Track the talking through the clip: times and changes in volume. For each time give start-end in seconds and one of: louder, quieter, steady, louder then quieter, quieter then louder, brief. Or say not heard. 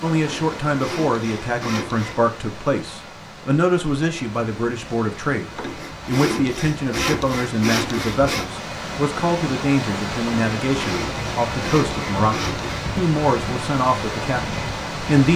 0.0-15.3 steady.